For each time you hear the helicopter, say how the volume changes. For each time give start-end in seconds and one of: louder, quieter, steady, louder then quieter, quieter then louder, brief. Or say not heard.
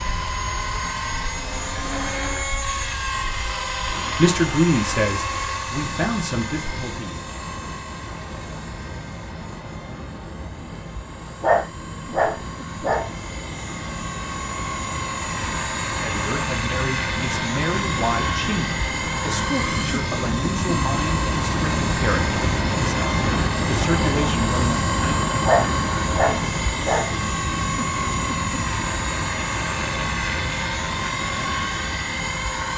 0.0-32.7 quieter then louder.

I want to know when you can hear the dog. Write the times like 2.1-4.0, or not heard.
11.4-13.1, 25.4-27.1.